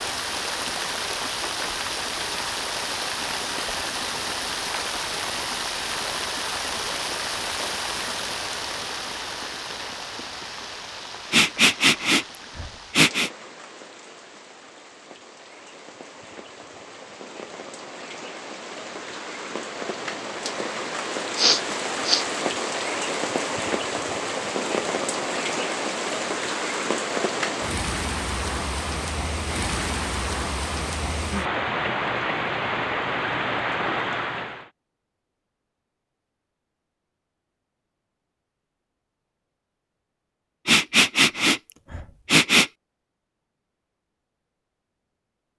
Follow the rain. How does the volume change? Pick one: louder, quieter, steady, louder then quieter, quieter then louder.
quieter then louder.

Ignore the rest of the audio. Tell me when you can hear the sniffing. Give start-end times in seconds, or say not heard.
11.3-13.3, 21.4-22.2, 40.6-42.7.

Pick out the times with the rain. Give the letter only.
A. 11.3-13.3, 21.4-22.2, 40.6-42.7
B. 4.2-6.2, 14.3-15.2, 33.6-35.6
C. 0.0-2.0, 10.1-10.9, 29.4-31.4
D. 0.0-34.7
D.